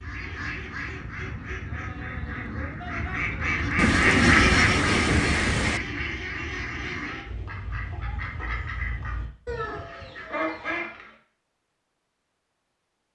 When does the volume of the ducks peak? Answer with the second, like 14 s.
4 s.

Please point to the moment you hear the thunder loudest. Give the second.
4 s.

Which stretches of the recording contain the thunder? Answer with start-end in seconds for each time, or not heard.
3.8-5.8.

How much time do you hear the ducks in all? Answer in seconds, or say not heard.
11 s.